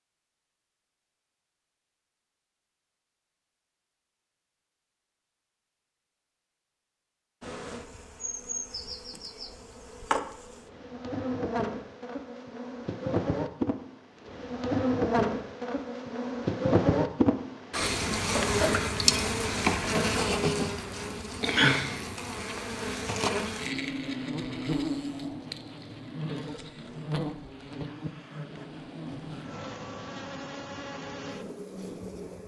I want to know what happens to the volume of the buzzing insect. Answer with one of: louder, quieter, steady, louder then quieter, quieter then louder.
louder then quieter.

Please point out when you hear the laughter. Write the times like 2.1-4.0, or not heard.
18.1-18.8.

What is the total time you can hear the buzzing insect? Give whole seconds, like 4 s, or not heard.
25 s.